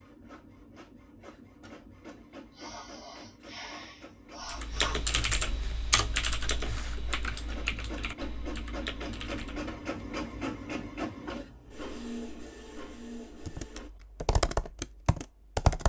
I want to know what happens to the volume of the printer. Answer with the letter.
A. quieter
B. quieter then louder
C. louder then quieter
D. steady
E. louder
E.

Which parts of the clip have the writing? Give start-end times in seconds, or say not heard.
not heard.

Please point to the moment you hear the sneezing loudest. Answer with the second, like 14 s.
5 s.